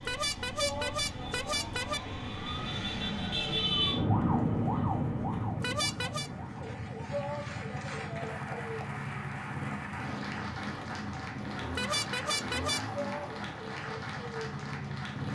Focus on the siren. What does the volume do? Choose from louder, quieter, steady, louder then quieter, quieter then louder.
louder then quieter.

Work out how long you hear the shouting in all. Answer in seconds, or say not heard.
3 s.